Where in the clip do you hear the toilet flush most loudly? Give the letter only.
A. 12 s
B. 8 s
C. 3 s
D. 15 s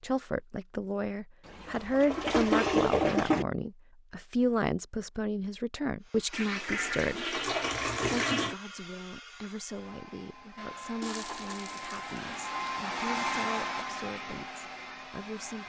C.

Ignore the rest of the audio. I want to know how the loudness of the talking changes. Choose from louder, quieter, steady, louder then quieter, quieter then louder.
quieter.